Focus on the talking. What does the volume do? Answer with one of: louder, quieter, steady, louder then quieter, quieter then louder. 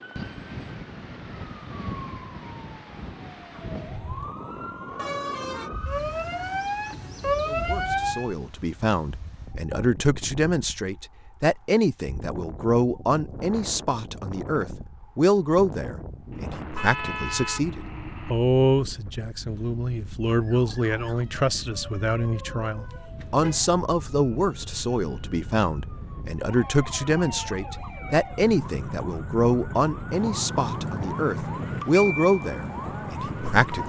steady.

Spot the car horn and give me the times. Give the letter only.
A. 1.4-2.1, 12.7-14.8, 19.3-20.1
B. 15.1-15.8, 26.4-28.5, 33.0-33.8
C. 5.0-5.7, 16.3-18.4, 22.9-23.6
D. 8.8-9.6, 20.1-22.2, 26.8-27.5
C.